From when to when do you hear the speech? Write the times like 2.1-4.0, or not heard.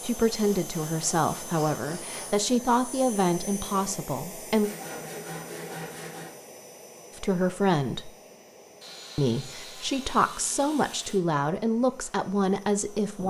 0.0-4.7, 7.2-8.1, 9.2-13.2.